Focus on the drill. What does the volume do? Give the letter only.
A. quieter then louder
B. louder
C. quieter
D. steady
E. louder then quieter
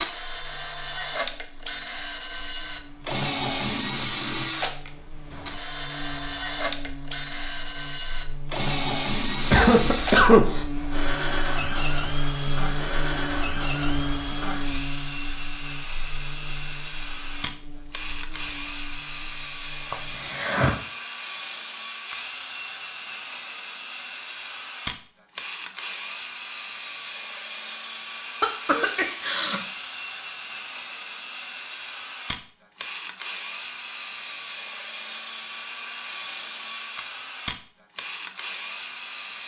D.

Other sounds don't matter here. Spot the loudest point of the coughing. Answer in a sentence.
The loudest moment of the coughing is at 10 seconds.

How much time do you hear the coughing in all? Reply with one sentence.
You can hear the coughing for 3 seconds altogether.